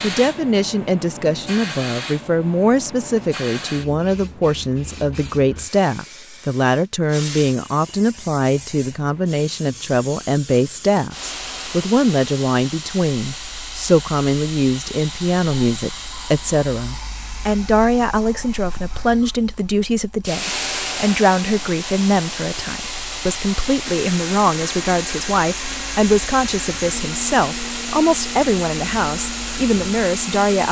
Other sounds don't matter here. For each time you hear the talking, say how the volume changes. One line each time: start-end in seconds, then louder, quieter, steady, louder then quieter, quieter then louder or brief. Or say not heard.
0.0-30.6 steady.